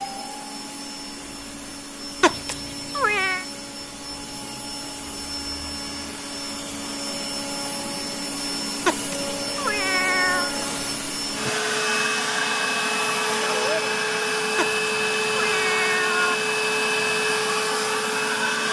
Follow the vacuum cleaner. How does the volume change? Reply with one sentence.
The loudness of the vacuum cleaner goes up.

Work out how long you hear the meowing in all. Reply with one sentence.
The meowing can be heard for 5 seconds in total.